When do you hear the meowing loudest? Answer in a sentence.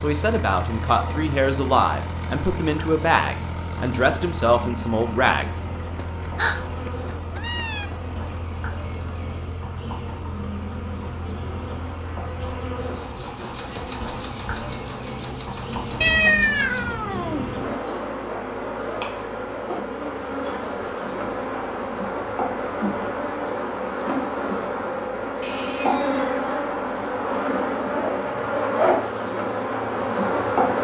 The loudest moment of the meowing is at 16 seconds.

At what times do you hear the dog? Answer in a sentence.
You can't hear the dog here.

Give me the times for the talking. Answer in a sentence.
You can hear the talking from 0.0 to 5.6 s.